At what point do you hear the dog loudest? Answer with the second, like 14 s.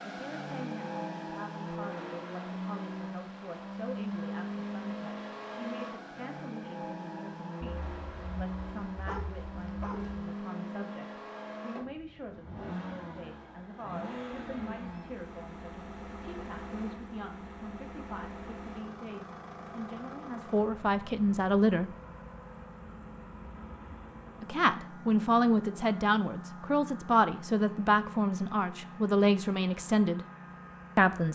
9 s.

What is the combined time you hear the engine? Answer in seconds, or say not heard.
31 s.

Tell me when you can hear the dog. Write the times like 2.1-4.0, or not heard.
7.8-10.3.